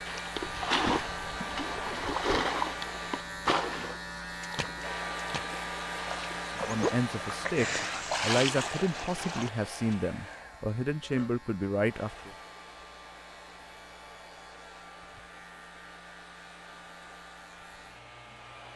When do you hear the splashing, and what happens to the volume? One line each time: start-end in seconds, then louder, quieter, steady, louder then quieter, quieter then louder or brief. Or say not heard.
0.1-9.9 quieter then louder.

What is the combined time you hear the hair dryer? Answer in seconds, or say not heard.
17 s.